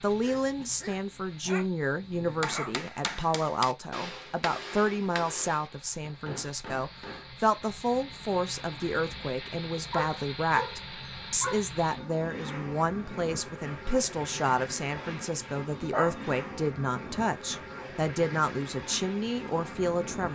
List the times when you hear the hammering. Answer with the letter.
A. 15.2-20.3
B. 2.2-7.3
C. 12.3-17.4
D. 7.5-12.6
B.